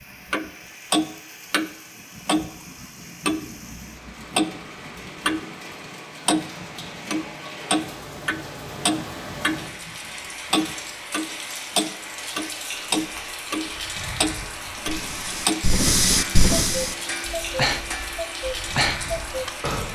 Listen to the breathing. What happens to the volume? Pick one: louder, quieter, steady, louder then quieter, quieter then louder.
quieter then louder.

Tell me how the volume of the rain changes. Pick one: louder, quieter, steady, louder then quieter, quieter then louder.
louder.